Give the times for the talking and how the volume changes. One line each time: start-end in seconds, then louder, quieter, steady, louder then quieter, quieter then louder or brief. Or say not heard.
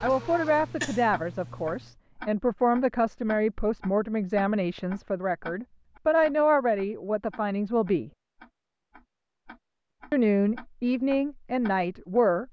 0.0-8.1 steady
10.1-12.4 brief.